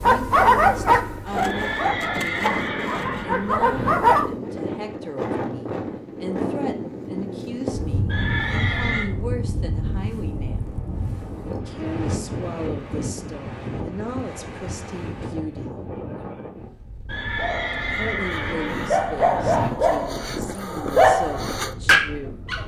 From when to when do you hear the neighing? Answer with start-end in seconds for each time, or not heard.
1.4-4.0, 8.1-9.1, 17.1-19.7.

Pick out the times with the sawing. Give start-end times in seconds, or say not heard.
1.2-3.2.